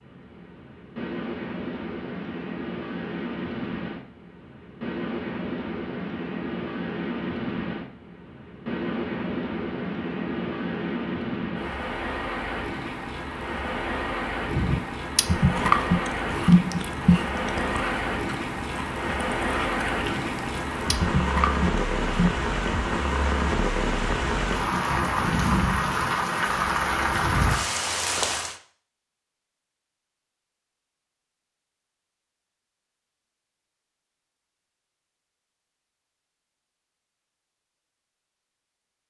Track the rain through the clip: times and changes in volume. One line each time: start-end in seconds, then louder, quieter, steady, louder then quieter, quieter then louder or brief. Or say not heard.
0.0-28.6 louder.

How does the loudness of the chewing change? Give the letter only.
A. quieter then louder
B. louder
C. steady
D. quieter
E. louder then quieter
A.